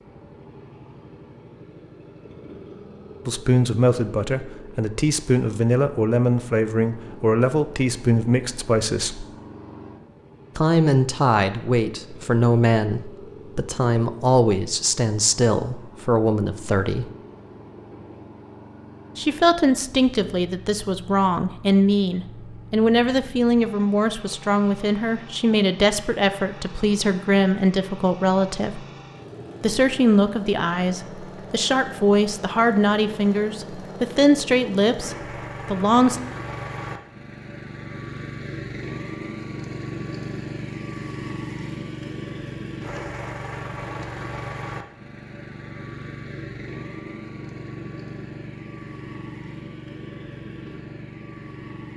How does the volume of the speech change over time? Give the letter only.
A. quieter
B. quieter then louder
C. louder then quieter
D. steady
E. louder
D.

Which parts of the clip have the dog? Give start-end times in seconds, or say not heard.
not heard.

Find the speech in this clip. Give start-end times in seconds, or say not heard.
3.2-9.2, 10.6-17.1, 19.1-28.9, 29.6-36.2.